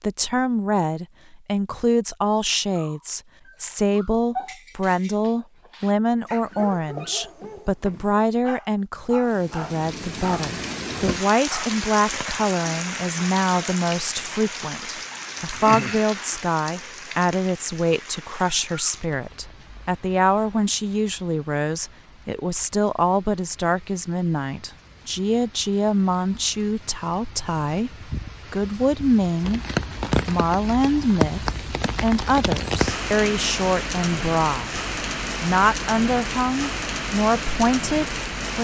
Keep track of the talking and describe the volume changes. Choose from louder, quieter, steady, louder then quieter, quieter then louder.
steady.